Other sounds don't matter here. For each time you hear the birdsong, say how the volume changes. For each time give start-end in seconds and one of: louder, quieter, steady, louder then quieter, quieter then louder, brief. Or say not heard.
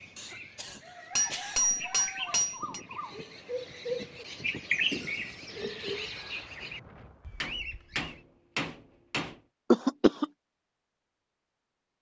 0.0-8.2 louder then quieter.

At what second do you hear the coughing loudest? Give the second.
10 s.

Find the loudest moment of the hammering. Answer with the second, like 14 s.
2 s.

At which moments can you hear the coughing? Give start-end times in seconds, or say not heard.
0.1-1.6, 4.9-5.9, 9.7-10.2.